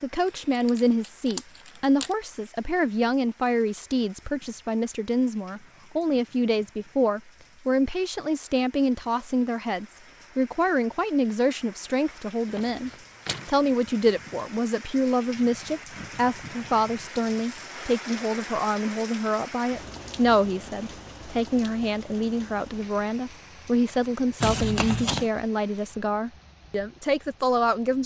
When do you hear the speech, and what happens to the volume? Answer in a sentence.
You can hear the speech from 0.0 to 28.0 s, at a steady volume.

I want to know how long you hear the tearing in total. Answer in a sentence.
You can hear the tearing for 3 seconds altogether.